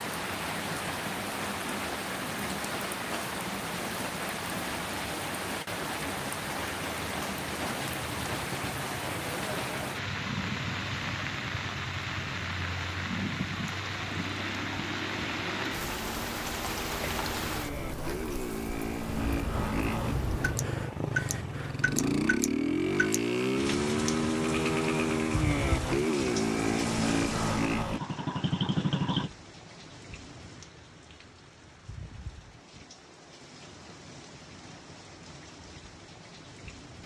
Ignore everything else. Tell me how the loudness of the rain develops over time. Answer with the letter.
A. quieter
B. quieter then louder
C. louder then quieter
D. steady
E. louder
A.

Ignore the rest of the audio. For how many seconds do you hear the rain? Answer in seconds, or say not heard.
37 s.